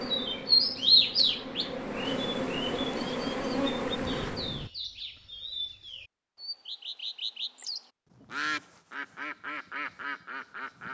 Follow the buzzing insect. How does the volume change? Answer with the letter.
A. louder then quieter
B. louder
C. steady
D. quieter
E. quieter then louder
B.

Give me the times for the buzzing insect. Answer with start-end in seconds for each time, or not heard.
0.0-4.7.